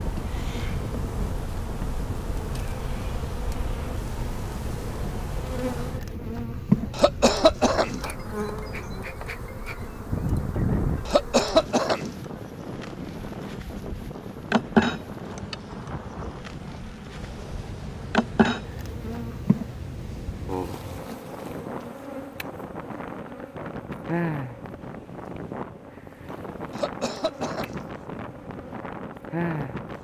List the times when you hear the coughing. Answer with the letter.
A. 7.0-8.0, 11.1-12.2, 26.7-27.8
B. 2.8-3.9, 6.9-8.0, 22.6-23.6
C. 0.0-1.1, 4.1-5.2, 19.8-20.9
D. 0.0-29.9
A.